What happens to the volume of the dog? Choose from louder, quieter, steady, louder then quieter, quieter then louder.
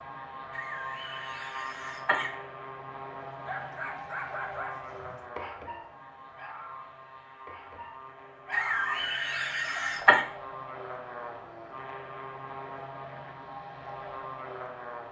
quieter then louder.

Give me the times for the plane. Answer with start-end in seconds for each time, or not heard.
0.0-15.0.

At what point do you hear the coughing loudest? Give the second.
10 s.